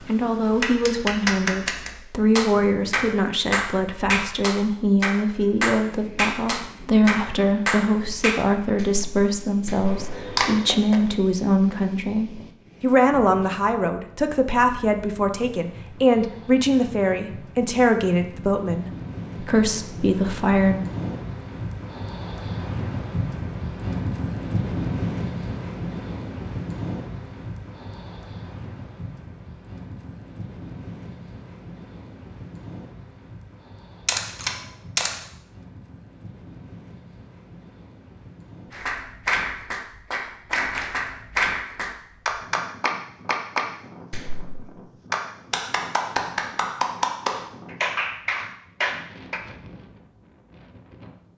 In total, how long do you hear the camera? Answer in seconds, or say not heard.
2 s.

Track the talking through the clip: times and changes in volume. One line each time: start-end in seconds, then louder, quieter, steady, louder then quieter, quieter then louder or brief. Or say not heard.
0.0-20.9 steady.